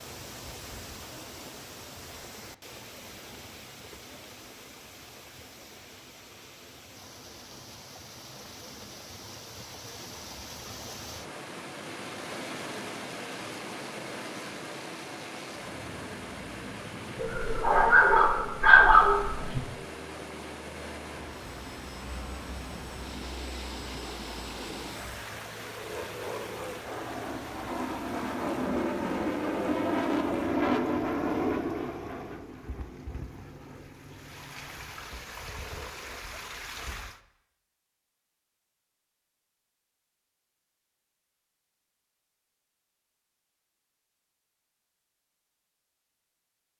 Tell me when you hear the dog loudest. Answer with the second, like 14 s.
19 s.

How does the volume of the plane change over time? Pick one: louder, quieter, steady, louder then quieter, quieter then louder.
louder then quieter.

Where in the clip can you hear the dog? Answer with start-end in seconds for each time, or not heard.
17.1-19.6.